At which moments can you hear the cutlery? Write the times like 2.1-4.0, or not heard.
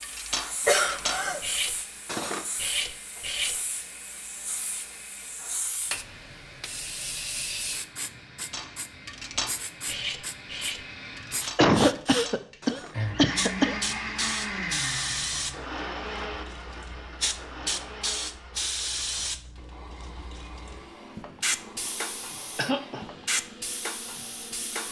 0.0-3.6, 8.5-13.1.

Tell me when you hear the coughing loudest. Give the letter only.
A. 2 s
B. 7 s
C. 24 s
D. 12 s
D.